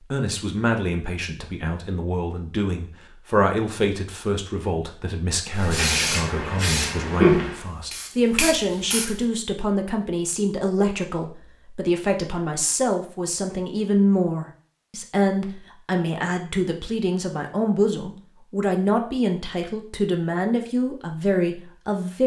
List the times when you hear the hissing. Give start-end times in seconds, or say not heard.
5.5-9.2.